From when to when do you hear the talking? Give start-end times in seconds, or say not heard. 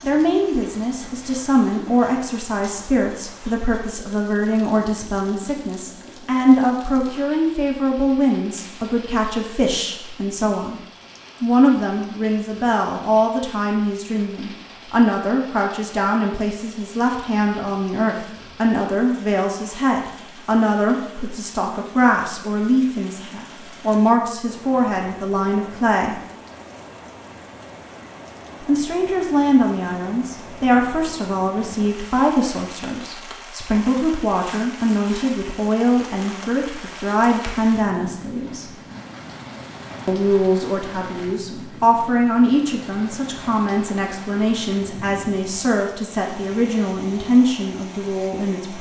0.0-10.8, 11.4-26.2, 28.6-38.7, 40.0-48.7.